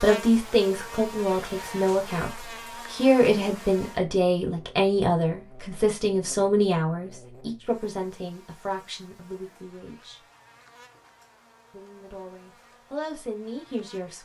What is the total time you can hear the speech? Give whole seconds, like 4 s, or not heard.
13 s.